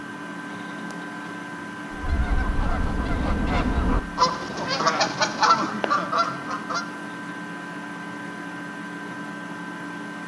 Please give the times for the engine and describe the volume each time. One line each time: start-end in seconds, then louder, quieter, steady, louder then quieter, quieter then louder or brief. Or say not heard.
0.0-10.2 steady.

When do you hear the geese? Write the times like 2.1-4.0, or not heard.
1.9-6.8.